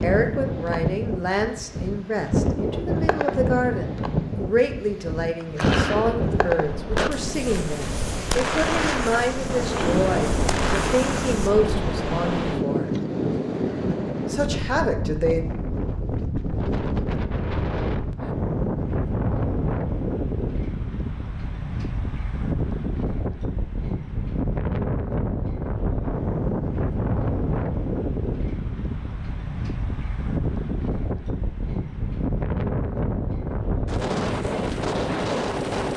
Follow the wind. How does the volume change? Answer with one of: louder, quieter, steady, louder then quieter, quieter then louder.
steady.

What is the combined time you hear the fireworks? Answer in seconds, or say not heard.
6 s.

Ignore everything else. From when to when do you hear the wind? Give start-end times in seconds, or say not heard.
0.0-35.9.